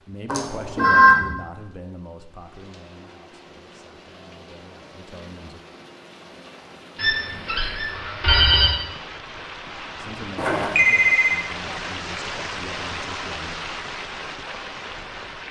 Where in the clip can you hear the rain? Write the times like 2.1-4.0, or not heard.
0.0-15.4.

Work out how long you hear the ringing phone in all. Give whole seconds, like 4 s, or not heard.
4 s.